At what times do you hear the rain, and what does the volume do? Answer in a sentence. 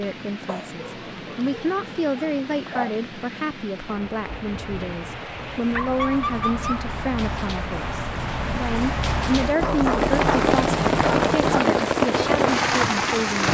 The rain can be heard from 0.0 to 13.4 s, getting louder.